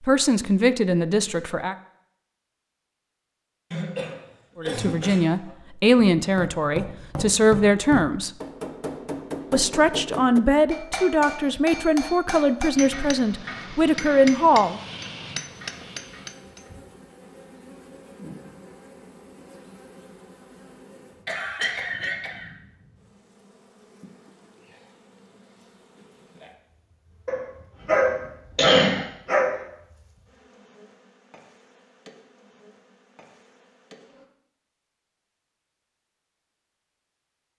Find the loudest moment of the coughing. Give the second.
29 s.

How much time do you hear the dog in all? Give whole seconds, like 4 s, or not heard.
2 s.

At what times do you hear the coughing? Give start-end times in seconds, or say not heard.
3.7-5.5, 21.2-22.5, 28.6-29.1.